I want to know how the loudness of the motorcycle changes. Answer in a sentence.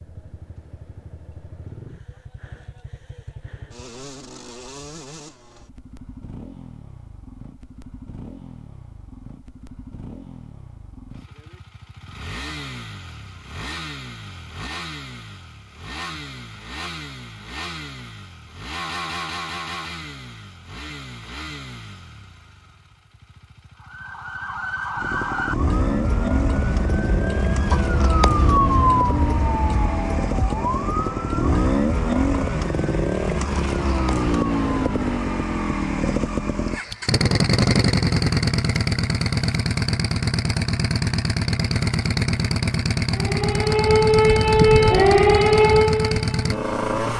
The volume of the motorcycle goes up.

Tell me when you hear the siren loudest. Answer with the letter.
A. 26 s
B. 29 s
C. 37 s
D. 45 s
D.